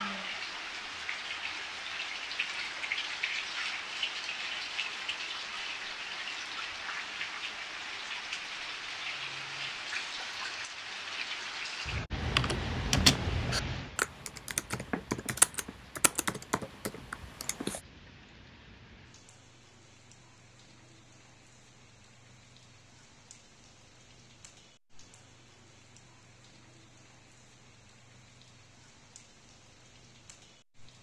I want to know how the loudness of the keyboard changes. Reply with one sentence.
The loudness of the keyboard goes down.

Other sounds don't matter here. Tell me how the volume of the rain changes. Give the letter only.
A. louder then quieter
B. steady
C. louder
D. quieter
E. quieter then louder
D.